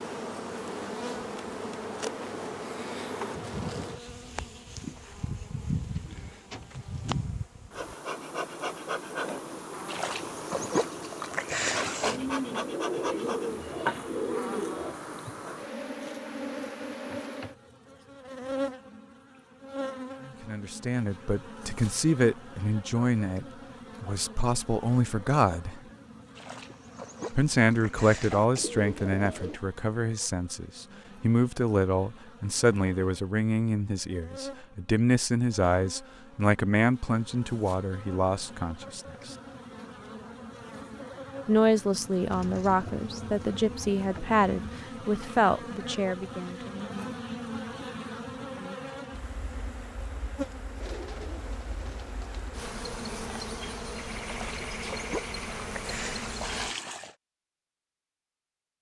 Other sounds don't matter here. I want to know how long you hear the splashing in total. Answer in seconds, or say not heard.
7 s.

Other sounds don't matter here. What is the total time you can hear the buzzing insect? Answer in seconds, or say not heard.
57 s.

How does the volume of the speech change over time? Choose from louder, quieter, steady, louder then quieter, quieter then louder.
steady.